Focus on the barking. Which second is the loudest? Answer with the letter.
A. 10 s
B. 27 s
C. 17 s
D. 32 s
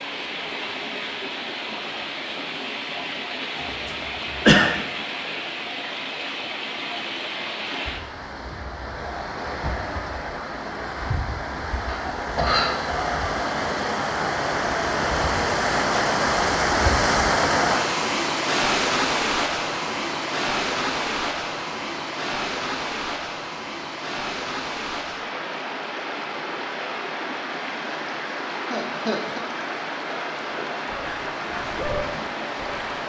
D.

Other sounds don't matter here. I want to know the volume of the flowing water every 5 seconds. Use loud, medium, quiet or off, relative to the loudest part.
medium, medium, medium, loud, medium, medium, medium.